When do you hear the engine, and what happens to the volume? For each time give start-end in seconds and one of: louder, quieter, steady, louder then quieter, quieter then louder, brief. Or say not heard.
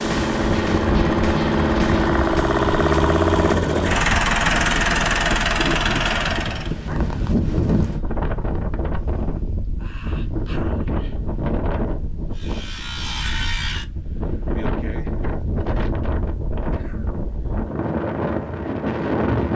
0.0-6.8 steady.